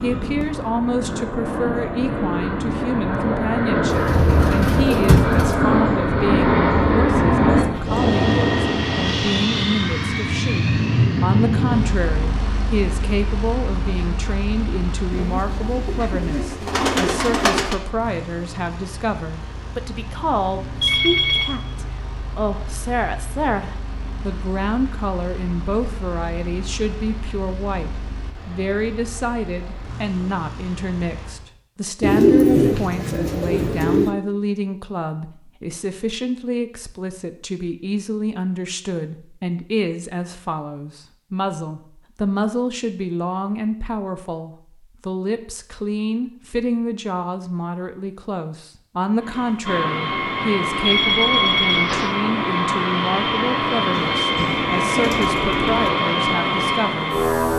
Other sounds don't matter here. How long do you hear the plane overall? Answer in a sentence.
You can hear the plane for 40 seconds altogether.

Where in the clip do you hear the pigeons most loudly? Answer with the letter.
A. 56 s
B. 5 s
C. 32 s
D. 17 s
C.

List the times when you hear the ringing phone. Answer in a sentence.
You can hear the ringing phone from 20.8 to 21.5 s and from 50.9 to 52.1 s.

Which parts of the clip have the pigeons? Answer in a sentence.
The pigeons can be heard from 3.9 to 5.5 s, from 15.1 to 17.8 s, from 32.0 to 34.1 s and from 53.9 to 55.9 s.